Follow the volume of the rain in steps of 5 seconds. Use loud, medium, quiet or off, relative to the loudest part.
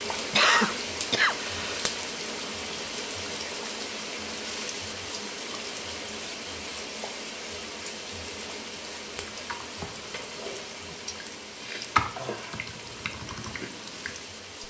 loud, loud, medium.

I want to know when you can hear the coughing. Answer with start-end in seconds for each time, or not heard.
0.3-1.9.